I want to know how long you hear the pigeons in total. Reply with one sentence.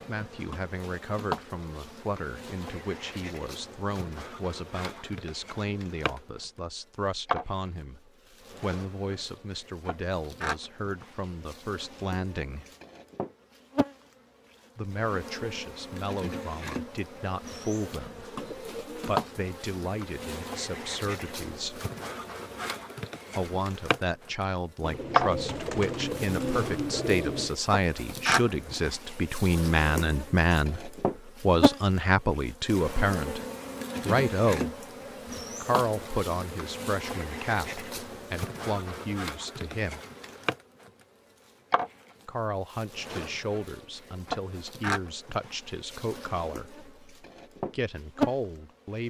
The pigeons can be heard for 4 seconds in total.